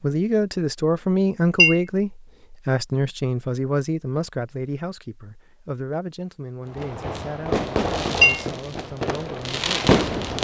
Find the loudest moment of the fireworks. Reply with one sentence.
The loudest moment of the fireworks is at 10 seconds.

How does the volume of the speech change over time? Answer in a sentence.
The loudness of the speech goes down.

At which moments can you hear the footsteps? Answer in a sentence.
You can't hear the footsteps here.